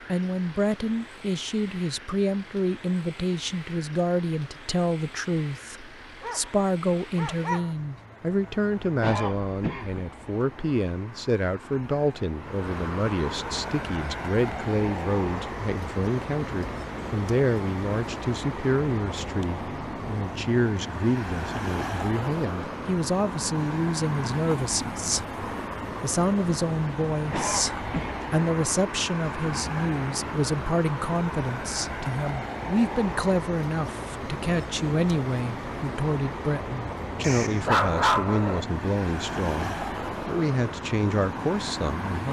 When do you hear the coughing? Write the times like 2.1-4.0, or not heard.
9.0-10.1, 27.3-28.1.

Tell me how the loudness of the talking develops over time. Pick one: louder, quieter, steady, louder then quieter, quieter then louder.
steady.